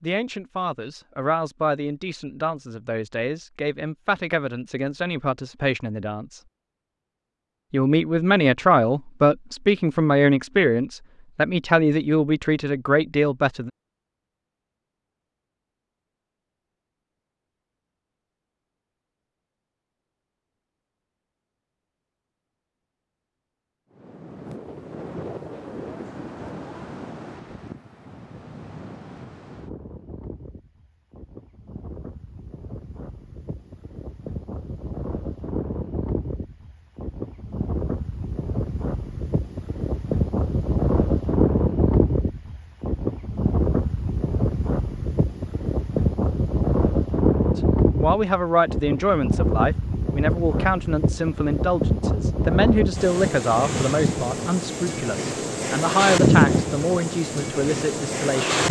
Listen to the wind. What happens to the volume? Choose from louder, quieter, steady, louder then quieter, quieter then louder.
louder.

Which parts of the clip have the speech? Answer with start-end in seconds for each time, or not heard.
0.0-6.4, 7.7-13.7, 47.5-58.6.